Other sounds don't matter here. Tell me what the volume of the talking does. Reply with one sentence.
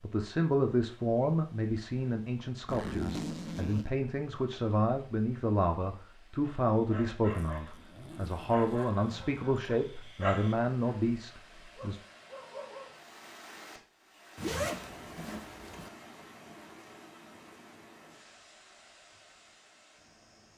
The volume of the talking stays about the same.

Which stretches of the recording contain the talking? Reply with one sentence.
You can hear the talking from 0.0 to 12.0 s.